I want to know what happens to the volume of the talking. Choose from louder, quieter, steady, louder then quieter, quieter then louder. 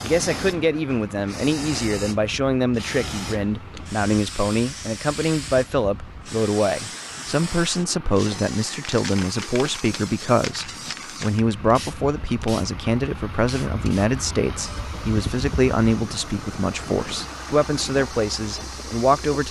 steady.